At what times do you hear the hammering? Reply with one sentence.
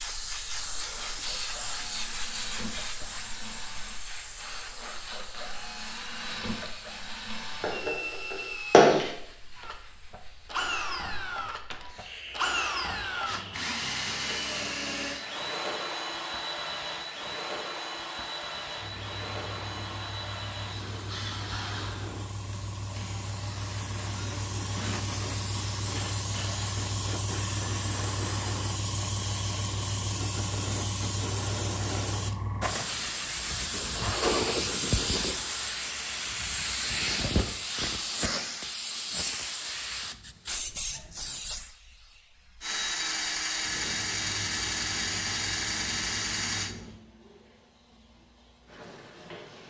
You can hear the hammering from 7.6 to 9.0 s.